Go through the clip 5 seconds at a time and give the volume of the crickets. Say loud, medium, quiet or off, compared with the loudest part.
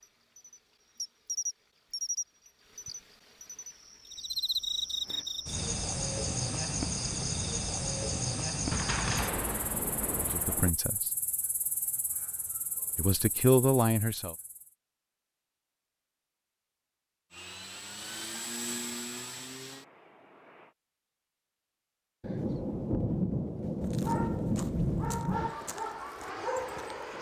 loud, loud, quiet, off, off, off.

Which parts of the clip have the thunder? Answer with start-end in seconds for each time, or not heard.
8.7-10.7, 22.2-25.6.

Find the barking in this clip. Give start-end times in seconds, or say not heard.
23.8-27.1.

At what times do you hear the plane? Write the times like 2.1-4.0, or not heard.
17.3-20.8, 25.3-27.1.